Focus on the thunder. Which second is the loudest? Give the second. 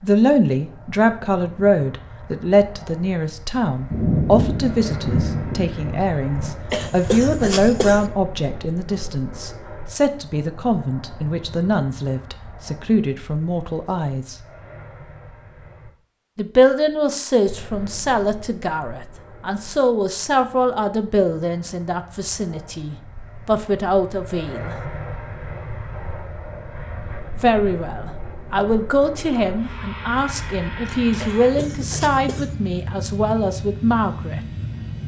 4 s.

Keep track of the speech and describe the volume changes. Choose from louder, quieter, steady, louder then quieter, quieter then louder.
steady.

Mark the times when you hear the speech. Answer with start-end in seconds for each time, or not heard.
0.0-14.3, 16.4-24.8, 27.4-34.4.